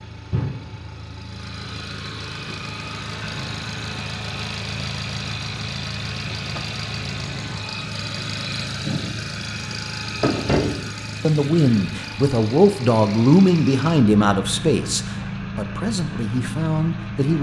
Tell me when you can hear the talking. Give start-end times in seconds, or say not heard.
11.2-17.3.